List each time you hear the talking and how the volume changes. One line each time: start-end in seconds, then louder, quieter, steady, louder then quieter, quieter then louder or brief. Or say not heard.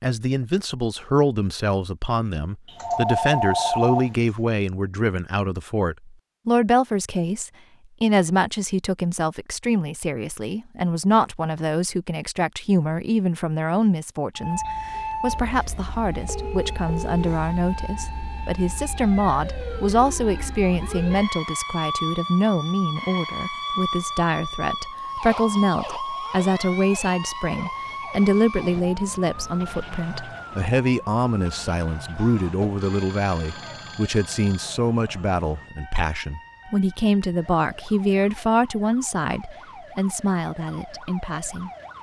0.0-41.7 steady.